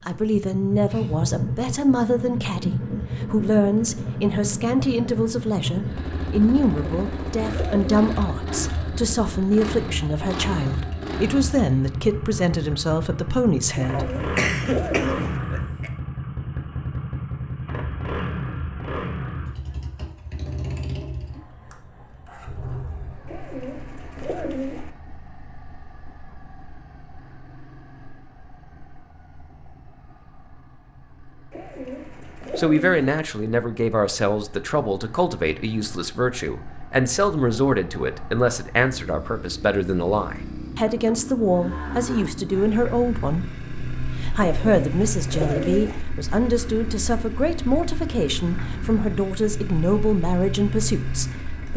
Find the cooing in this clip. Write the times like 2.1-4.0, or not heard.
6.7-8.1, 13.8-15.4, 23.2-24.9, 31.5-33.1, 44.4-46.0.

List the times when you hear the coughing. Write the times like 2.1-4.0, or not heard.
13.9-15.9.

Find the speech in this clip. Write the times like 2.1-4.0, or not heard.
0.1-14.1, 32.5-43.5, 44.2-51.7.